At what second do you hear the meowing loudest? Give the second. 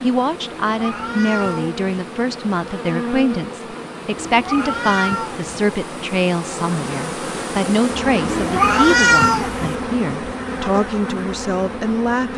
9 s.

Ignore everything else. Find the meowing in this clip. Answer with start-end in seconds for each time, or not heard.
0.5-1.8, 4.2-5.5, 8.2-9.8.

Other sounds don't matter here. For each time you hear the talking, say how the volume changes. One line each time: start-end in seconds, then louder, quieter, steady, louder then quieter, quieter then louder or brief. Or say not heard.
0.0-12.3 steady.